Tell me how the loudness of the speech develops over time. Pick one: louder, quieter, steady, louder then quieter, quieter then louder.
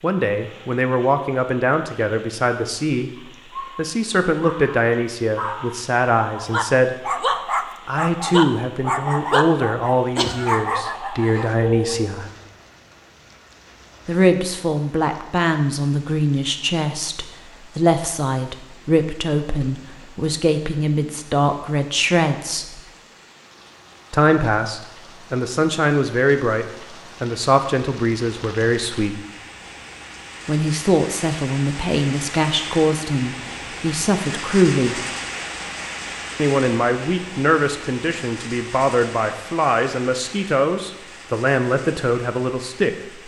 steady.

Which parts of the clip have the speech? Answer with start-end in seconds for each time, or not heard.
0.0-12.3, 14.1-22.8, 24.1-29.2, 30.4-35.0, 36.4-43.2.